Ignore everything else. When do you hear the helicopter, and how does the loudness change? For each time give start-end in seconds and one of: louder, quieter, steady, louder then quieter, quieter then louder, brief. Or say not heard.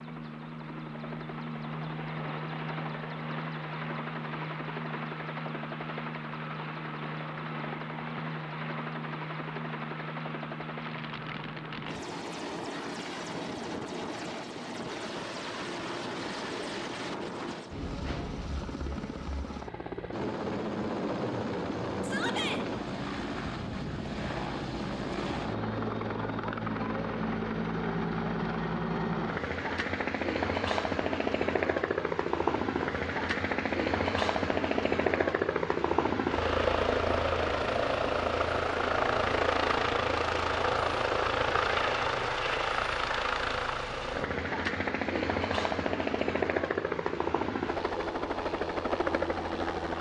0.0-49.9 louder.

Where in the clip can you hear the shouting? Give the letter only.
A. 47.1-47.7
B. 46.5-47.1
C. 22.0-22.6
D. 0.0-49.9
C.